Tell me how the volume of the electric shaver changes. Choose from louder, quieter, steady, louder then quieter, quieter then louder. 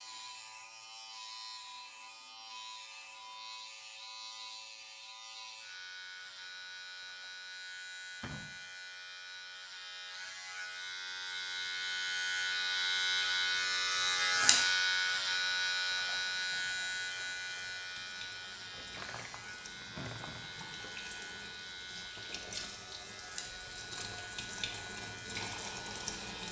louder then quieter.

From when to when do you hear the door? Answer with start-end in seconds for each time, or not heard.
8.2-8.6, 18.7-21.0.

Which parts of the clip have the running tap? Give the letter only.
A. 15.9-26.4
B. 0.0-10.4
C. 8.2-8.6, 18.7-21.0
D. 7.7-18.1
A.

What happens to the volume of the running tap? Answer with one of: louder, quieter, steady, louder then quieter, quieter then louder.
louder.